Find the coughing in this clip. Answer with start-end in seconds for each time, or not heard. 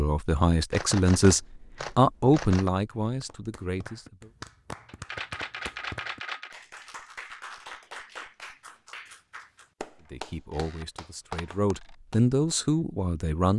not heard.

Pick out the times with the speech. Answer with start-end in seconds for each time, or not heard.
0.0-4.3, 10.1-13.5.